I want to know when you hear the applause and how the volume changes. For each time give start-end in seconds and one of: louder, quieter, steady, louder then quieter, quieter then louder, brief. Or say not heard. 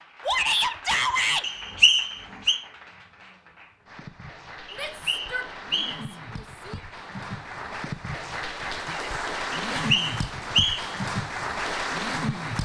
0.0-12.6 louder.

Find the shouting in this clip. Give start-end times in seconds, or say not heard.
0.2-1.4, 4.7-6.8, 8.8-10.1.